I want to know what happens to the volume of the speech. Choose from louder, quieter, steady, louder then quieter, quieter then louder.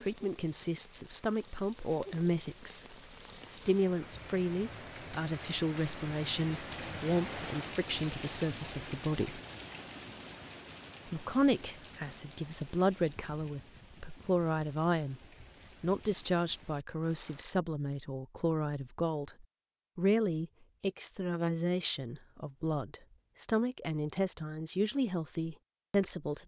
steady.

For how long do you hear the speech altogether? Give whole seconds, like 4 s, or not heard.
24 s.